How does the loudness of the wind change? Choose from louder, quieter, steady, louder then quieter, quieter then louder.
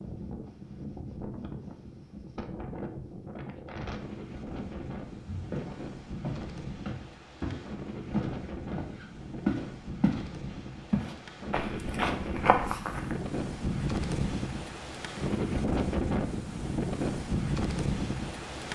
louder.